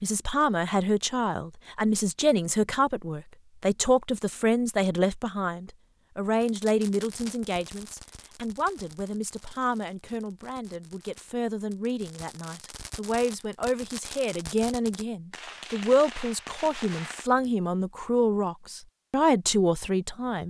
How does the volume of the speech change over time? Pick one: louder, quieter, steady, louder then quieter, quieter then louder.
quieter then louder.